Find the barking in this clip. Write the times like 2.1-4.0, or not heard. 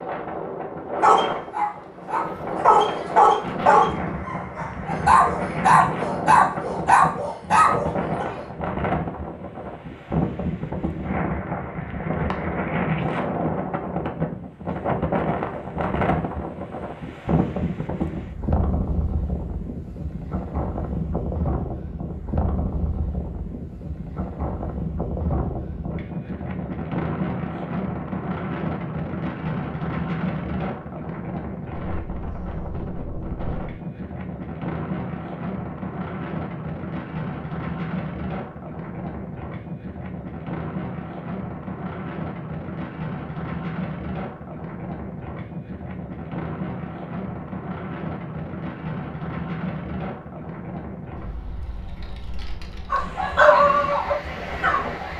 1.0-8.3, 52.9-55.1.